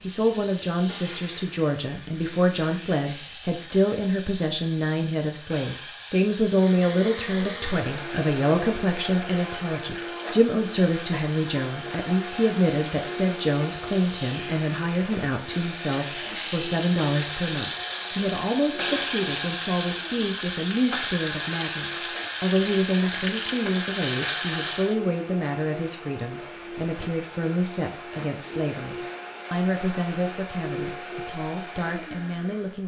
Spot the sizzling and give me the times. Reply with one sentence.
The sizzling can be heard from 0.0 to 24.9 s.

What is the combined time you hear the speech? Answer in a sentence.
You can hear the speech for 33 seconds altogether.